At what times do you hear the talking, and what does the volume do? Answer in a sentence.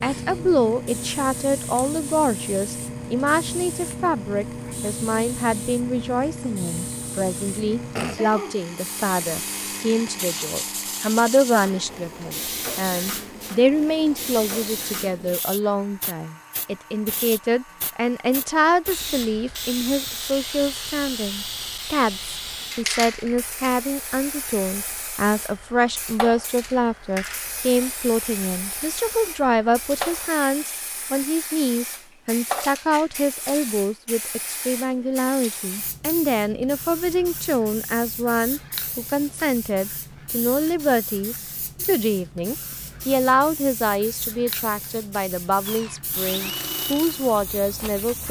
The talking can be heard from 0.0 to 48.2 s, at a steady volume.